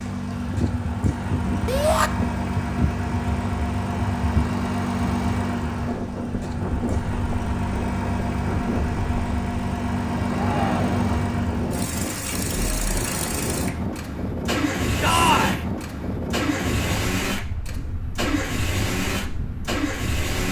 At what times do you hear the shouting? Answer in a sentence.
The shouting can be heard from 1.6 to 2.1 s, from 10.3 to 11.0 s and from 15.0 to 15.6 s.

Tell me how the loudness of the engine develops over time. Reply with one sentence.
The loudness of the engine stays about the same.